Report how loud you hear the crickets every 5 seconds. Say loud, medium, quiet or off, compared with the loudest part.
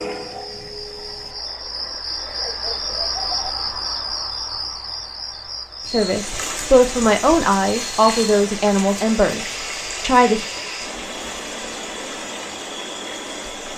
loud, medium, medium.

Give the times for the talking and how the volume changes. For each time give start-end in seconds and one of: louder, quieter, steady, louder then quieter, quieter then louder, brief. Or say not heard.
5.9-10.4 quieter.